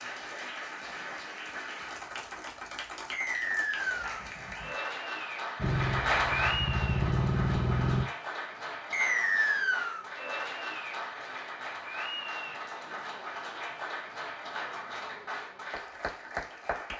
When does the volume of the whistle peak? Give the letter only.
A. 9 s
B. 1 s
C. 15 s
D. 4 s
A.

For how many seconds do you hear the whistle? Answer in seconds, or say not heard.
2 s.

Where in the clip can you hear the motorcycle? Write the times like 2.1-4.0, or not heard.
5.5-8.1.